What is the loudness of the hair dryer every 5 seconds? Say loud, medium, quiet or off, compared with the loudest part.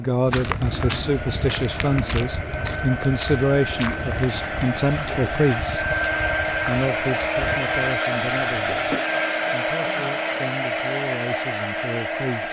medium, loud, loud.